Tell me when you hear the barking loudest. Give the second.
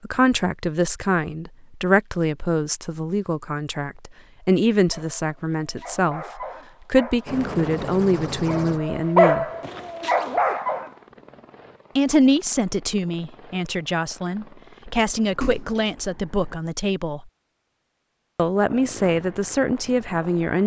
9 s.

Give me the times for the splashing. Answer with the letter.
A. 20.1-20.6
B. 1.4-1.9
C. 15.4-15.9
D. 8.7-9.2
C.